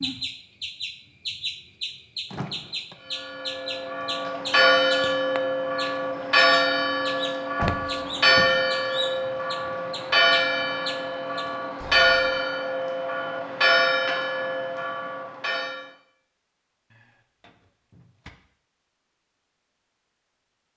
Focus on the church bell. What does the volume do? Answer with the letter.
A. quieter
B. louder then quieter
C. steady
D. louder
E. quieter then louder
C.